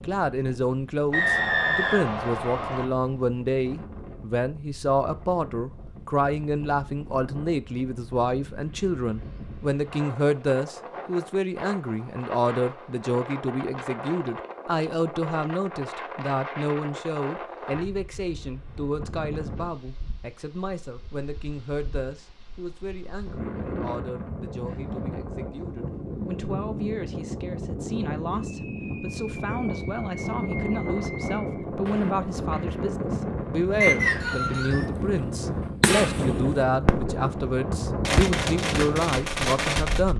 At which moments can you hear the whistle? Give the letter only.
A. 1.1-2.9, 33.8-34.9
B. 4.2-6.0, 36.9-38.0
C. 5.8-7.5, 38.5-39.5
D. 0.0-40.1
A.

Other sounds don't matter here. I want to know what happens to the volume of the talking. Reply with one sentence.
The loudness of the talking goes down, then up.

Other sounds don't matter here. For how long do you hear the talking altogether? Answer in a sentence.
The talking can be heard for 40 seconds in total.